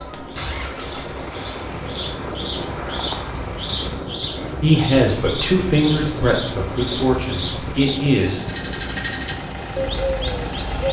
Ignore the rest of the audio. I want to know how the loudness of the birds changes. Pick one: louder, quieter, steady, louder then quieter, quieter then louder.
louder.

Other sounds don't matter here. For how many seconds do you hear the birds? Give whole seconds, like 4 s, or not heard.
11 s.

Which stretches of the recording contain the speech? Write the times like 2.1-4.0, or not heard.
4.6-8.4.